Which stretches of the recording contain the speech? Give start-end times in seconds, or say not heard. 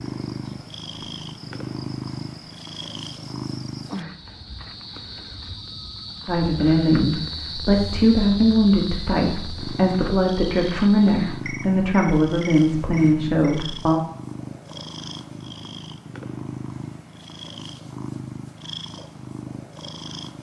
6.2-14.0.